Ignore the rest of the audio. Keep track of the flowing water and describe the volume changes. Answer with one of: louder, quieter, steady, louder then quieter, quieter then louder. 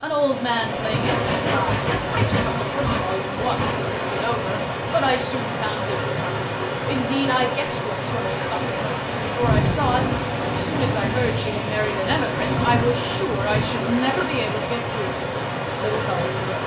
steady.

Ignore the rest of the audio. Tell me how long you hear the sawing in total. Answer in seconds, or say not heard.
3 s.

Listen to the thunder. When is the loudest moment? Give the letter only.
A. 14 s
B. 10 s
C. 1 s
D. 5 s
B.